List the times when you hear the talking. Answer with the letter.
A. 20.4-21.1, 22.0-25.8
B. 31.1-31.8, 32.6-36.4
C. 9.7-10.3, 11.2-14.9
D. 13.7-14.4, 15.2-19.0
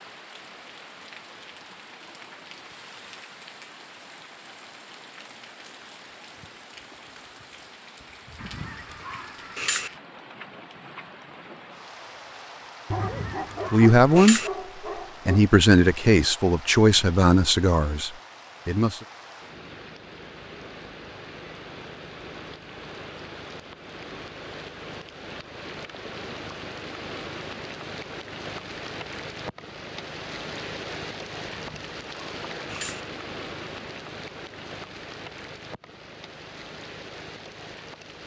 D.